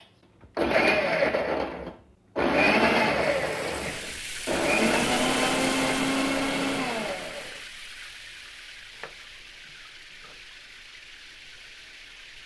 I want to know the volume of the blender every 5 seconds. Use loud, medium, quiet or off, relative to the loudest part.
loud, loud, off.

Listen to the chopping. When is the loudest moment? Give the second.
9 s.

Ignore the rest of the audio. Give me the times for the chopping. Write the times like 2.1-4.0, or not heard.
8.9-10.4.